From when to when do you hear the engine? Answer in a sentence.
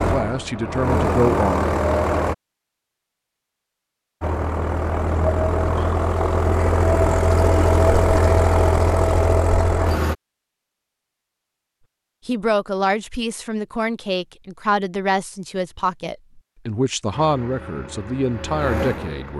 The engine can be heard from 0.0 to 2.4 s, from 4.2 to 10.2 s and from 17.1 to 19.3 s.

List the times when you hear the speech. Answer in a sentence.
The speech can be heard from 0.0 to 1.6 s and from 12.2 to 19.3 s.